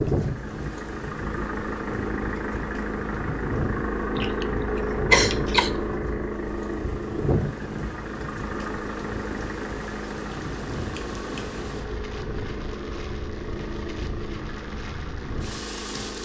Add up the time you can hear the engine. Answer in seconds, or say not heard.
16 s.